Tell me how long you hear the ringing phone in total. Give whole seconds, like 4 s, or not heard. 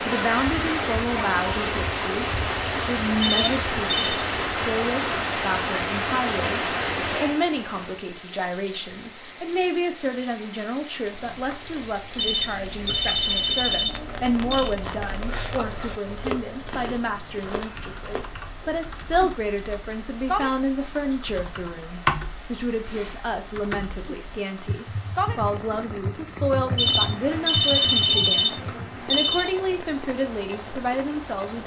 6 s.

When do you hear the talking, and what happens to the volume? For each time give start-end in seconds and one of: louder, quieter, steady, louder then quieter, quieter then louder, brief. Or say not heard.
0.0-31.6 steady.